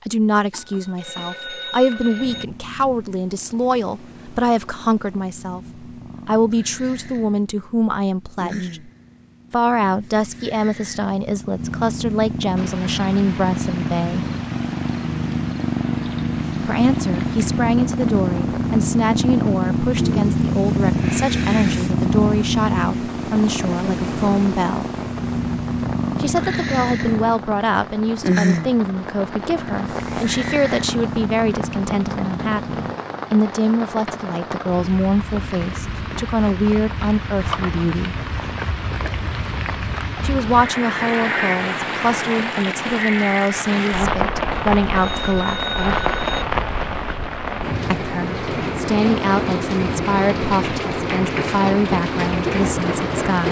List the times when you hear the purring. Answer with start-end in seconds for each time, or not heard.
2.1-33.0.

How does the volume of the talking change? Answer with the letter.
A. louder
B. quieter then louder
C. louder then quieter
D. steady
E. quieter
D.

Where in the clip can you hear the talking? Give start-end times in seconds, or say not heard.
0.1-8.9, 9.5-14.2, 16.6-24.9, 26.2-38.1, 40.2-45.6, 47.9-53.4.